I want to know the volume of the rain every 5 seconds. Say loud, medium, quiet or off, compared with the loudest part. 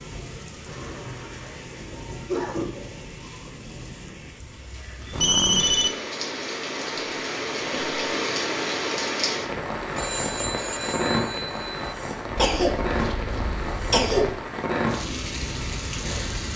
medium, loud, loud, loud.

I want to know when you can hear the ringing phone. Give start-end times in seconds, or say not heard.
5.1-5.9, 9.9-11.8.